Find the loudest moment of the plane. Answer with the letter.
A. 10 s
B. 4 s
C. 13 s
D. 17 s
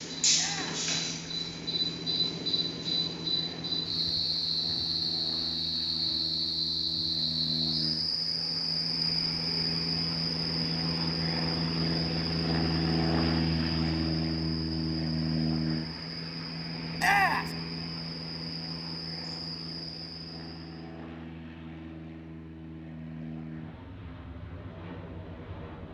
C.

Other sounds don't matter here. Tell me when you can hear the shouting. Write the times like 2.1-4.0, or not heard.
0.3-0.9, 16.9-17.6.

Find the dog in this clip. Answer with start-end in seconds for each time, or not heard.
not heard.